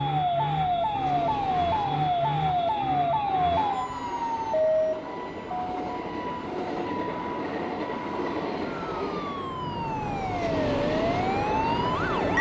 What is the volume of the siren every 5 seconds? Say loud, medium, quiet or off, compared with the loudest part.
loud, medium, loud.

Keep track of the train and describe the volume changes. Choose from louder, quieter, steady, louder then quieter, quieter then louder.
louder.